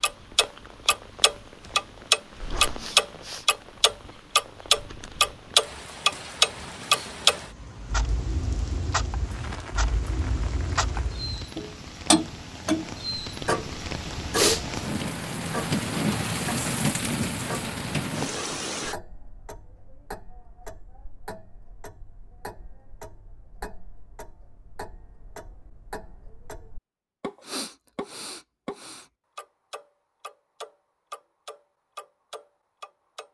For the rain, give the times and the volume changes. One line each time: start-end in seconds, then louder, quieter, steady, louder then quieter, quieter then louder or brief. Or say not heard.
0.0-18.9 louder.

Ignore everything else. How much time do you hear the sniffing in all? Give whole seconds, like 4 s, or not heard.
3 s.